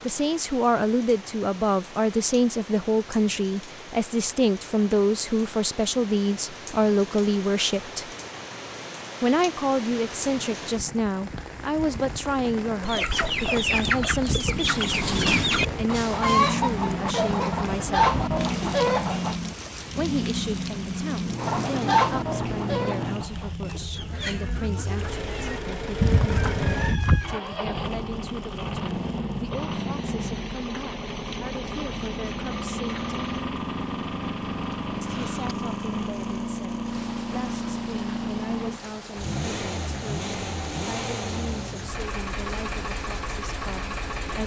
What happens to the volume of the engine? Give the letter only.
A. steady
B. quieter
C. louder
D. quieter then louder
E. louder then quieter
A.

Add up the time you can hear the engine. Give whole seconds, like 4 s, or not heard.
29 s.